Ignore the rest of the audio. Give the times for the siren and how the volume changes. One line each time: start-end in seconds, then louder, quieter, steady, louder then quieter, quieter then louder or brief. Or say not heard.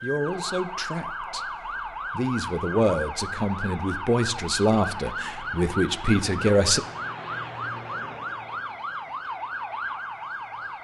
0.0-10.7 steady.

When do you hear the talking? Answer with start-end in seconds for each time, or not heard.
0.0-6.8.